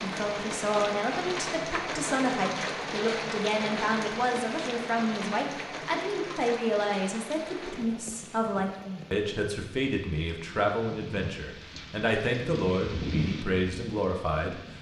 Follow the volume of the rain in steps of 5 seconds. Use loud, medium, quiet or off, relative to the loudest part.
loud, medium, medium.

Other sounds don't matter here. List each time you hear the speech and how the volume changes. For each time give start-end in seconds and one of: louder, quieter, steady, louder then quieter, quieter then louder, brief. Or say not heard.
0.0-14.7 steady.